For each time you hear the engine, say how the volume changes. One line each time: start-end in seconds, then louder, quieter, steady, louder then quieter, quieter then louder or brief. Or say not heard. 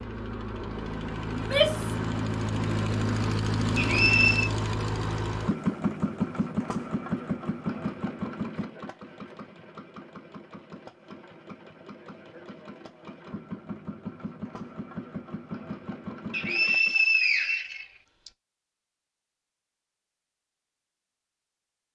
0.0-16.9 quieter then louder.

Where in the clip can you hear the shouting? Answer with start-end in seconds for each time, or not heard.
1.3-1.9.